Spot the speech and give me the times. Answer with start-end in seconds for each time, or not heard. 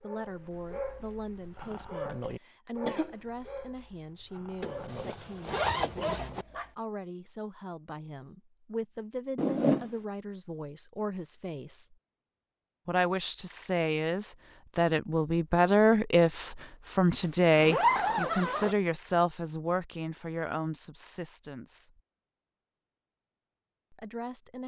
0.0-11.9, 12.8-21.9, 23.9-24.6.